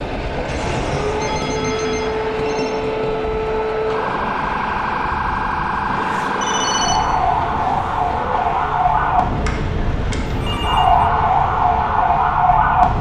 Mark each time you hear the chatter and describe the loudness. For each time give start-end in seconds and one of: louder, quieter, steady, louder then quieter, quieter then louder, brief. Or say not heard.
not heard.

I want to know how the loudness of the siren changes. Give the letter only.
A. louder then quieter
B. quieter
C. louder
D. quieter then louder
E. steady
C.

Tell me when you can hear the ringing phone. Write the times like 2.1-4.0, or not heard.
0.5-2.8, 6.4-7.0, 10.2-11.1.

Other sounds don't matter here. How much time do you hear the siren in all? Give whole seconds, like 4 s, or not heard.
13 s.